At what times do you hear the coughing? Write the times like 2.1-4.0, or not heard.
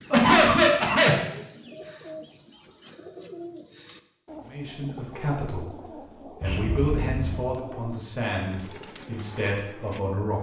0.1-1.1, 6.4-7.5.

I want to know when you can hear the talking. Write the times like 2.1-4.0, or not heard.
4.4-10.3.